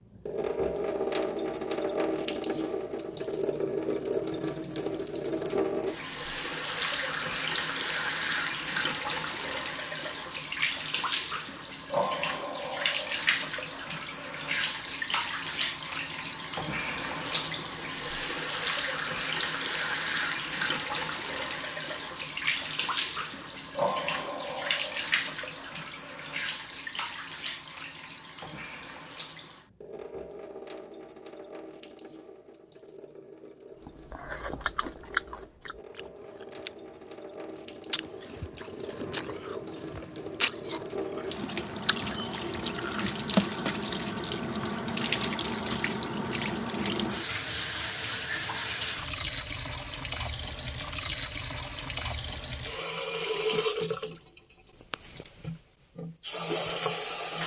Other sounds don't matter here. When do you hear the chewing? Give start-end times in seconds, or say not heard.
33.9-43.1.